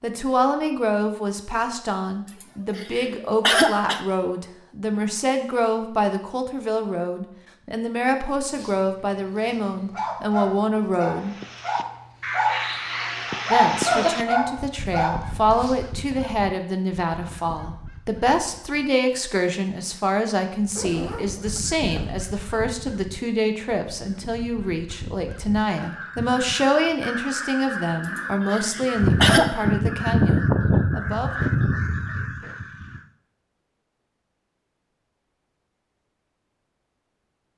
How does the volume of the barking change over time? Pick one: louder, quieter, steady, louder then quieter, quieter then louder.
louder then quieter.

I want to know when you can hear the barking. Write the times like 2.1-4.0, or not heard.
8.6-16.1.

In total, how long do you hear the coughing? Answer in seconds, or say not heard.
3 s.